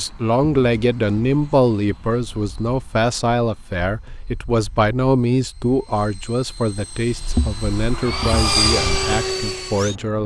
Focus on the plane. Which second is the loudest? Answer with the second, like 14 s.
9 s.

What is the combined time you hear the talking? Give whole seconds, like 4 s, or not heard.
10 s.